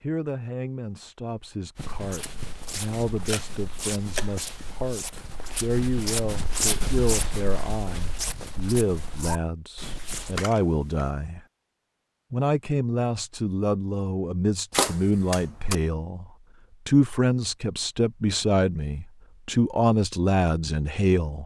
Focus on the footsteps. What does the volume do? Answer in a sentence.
The loudness of the footsteps goes up, then down.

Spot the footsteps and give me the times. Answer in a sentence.
You can hear the footsteps from 1.8 to 10.4 s.